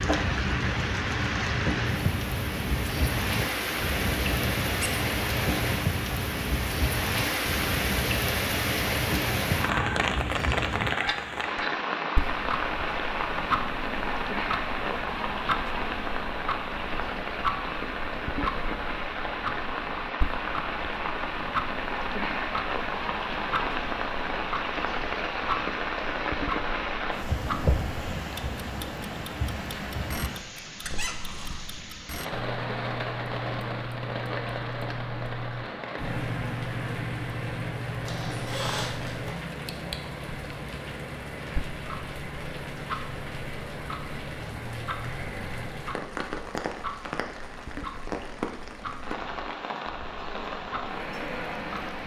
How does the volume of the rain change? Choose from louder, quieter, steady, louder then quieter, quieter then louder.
quieter.